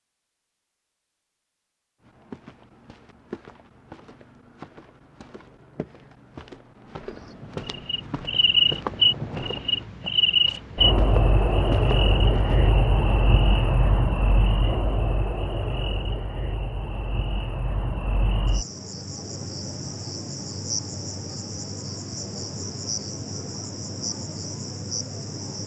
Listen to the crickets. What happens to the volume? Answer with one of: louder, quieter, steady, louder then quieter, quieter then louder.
quieter.